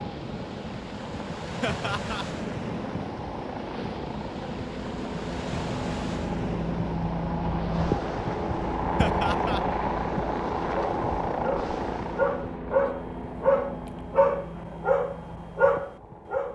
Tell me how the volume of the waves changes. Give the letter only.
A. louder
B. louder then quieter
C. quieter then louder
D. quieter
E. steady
E.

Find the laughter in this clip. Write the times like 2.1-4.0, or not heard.
1.6-2.2, 8.9-9.6.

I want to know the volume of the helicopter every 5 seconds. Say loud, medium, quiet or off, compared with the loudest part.
medium, loud, loud, quiet.